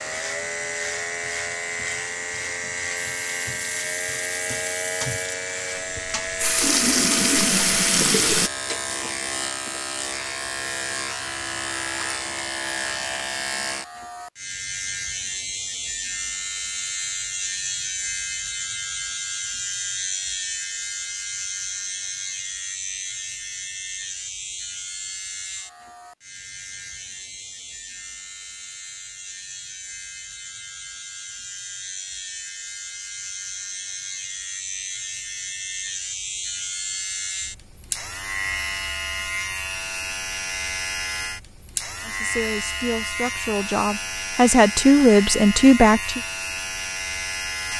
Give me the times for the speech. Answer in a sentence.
You can hear the speech from 42.0 to 46.2 s.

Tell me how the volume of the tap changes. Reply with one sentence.
The loudness of the tap goes down, then up.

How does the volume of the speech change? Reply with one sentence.
The volume of the speech goes up.